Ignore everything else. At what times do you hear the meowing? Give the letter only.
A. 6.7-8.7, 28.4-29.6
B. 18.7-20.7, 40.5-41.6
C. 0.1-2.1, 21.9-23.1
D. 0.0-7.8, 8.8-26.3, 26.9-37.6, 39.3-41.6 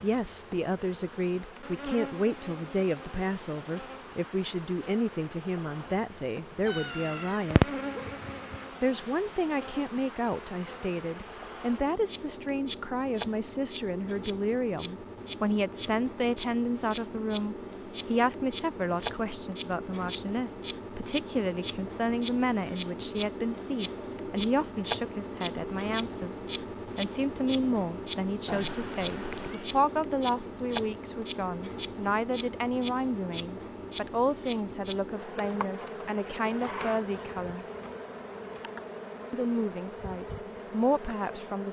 A.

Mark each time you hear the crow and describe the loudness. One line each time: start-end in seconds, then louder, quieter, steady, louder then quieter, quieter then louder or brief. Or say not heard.
not heard.